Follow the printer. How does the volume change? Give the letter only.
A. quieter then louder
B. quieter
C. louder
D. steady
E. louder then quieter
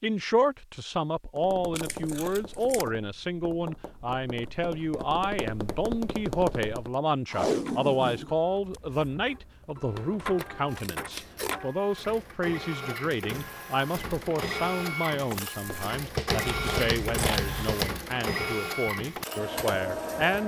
C.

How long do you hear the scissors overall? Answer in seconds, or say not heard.
4 s.